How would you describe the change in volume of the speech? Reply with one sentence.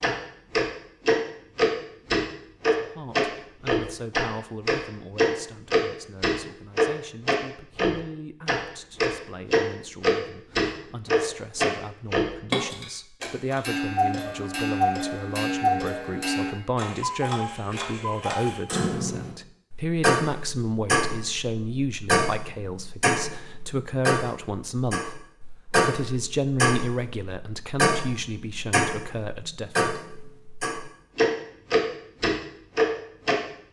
The volume of the speech goes up.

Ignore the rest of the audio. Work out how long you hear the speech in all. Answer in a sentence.
You can hear the speech for 27 seconds altogether.